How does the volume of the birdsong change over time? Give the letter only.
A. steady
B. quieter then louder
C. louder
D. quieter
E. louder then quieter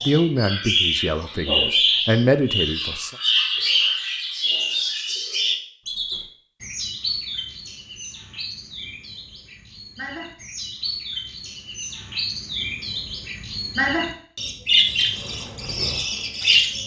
B.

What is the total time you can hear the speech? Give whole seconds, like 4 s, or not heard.
3 s.